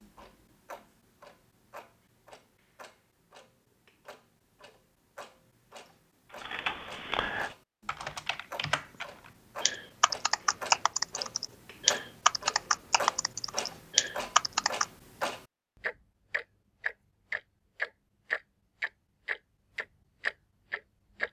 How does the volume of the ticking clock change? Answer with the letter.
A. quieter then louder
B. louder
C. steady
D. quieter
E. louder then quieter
B.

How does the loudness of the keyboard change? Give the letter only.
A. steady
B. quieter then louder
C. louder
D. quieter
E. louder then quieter
C.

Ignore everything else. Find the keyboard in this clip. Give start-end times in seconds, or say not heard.
6.4-14.8.